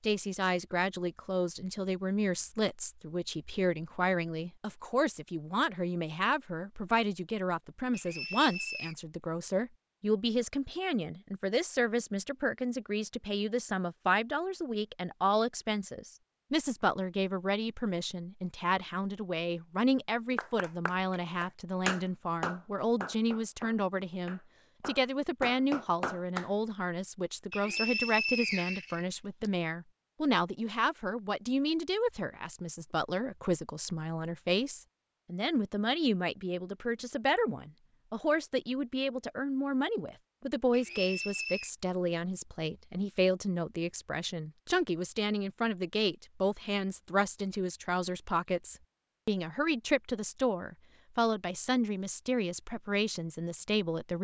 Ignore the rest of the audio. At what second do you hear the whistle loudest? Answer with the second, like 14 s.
28 s.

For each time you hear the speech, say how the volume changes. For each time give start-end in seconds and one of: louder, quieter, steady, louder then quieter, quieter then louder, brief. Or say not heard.
0.0-54.2 steady.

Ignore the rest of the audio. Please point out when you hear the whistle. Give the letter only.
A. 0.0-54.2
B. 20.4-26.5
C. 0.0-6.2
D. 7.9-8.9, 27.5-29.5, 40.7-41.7
D.